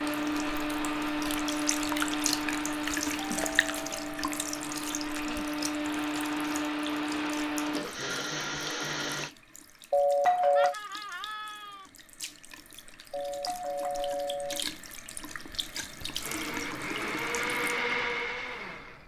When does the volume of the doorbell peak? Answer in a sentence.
The loudest moment of the doorbell is at 10 seconds.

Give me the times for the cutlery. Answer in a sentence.
You can't hear the cutlery here.